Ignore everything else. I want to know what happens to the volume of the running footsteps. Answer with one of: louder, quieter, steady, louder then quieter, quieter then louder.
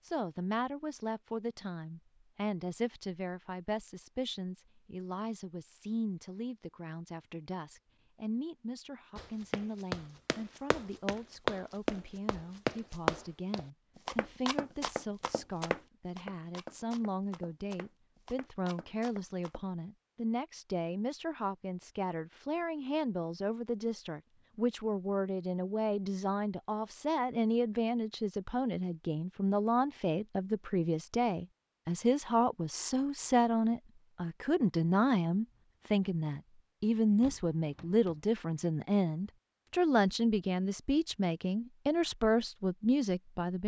quieter.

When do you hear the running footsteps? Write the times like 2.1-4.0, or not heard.
9.2-19.6.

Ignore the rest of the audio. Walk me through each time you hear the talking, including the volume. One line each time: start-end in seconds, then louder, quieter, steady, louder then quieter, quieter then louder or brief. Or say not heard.
0.0-43.6 louder.